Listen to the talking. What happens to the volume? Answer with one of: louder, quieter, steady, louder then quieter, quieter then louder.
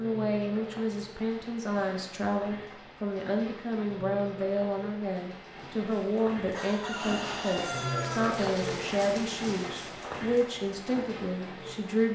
steady.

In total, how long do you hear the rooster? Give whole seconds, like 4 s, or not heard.
2 s.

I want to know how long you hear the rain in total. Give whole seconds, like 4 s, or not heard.
12 s.